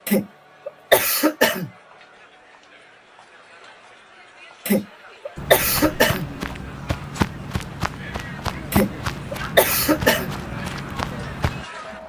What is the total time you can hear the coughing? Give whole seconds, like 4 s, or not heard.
5 s.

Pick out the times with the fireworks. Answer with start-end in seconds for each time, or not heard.
not heard.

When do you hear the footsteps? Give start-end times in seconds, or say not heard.
5.3-11.7.